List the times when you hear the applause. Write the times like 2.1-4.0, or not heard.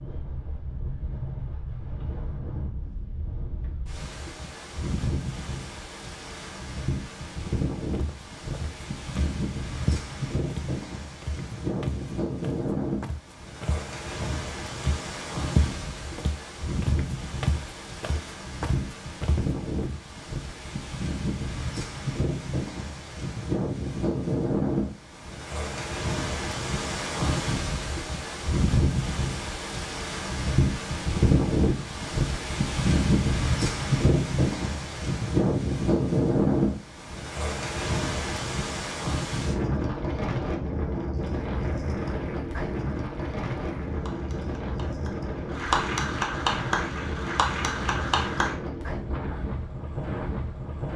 41.4-48.5.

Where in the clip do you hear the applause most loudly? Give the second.
46 s.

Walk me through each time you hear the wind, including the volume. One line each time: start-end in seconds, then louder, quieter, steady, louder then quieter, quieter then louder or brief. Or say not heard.
0.0-50.9 louder then quieter.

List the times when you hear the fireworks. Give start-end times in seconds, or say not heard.
not heard.